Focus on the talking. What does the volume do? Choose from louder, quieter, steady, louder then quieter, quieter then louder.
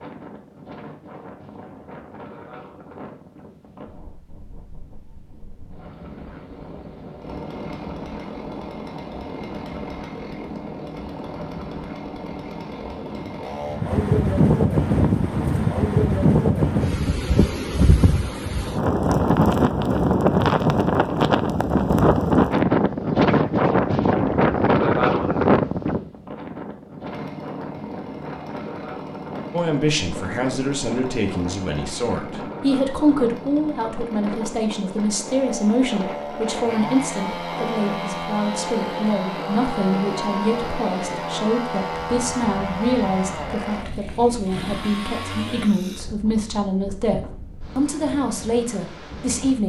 steady.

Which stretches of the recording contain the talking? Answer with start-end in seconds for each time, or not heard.
29.5-49.6.